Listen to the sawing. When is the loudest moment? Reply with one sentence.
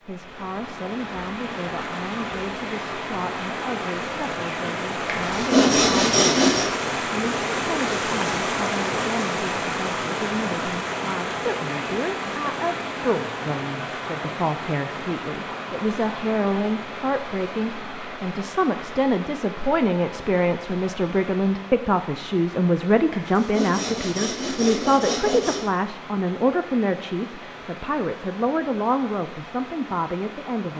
The loudest moment of the sawing is at 6 seconds.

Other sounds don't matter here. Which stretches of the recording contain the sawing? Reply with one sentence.
The sawing can be heard from 5.0 to 6.7 s and from 23.1 to 25.7 s.